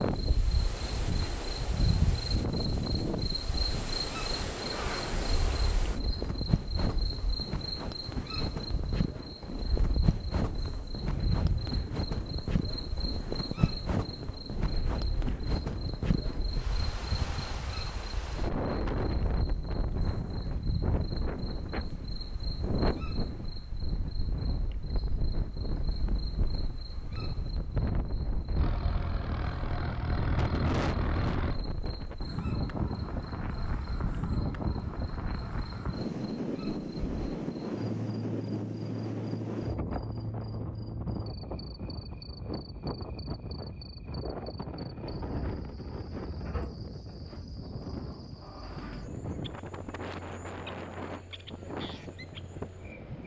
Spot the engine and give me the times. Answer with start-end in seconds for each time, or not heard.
28.6-31.6.